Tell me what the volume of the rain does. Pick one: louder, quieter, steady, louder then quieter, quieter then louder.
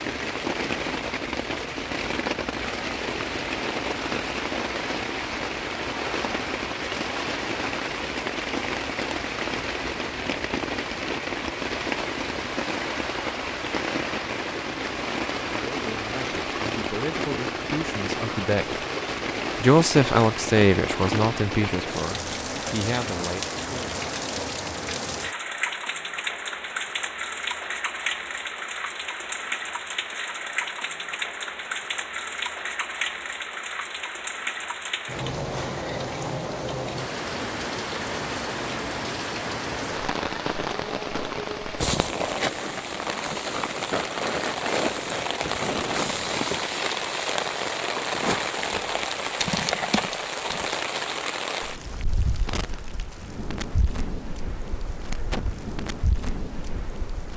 steady.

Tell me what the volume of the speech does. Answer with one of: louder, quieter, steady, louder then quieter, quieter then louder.
louder then quieter.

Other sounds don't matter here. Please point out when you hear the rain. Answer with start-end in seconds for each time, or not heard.
0.0-57.3.